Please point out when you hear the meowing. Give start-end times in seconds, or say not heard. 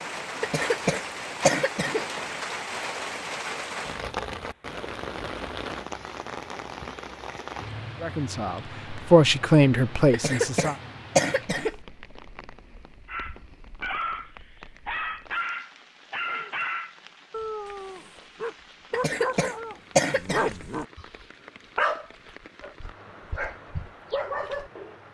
not heard.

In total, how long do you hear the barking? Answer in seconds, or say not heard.
12 s.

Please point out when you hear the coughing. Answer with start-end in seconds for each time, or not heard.
0.4-2.0, 10.1-11.8, 18.9-20.5.